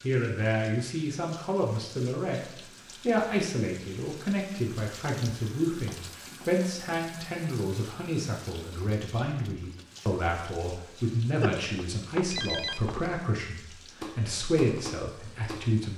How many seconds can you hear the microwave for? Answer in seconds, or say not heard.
not heard.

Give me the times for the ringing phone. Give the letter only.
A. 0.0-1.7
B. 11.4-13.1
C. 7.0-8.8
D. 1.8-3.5
B.